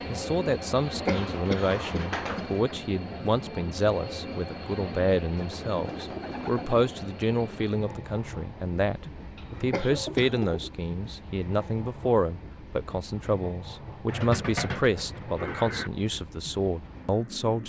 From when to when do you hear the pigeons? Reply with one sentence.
You can hear the pigeons from 1.1 to 2.6 s, from 5.3 to 7.0 s, from 9.3 to 10.8 s and from 14.1 to 15.9 s.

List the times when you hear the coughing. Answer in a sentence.
The coughing can be heard from 1.1 to 2.6 s and from 9.7 to 10.3 s.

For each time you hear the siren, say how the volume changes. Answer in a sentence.
You can't hear the siren here.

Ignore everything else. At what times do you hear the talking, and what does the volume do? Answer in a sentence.
You can hear the talking from 0.1 to 17.6 s, at a steady volume.